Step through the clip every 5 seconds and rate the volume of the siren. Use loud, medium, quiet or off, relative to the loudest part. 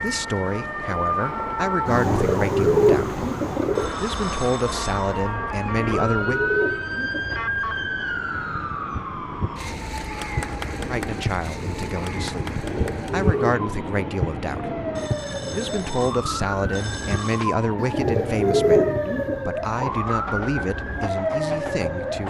loud, loud, medium, loud, loud.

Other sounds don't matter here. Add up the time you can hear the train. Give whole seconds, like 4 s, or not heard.
22 s.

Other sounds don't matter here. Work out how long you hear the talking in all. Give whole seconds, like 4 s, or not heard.
16 s.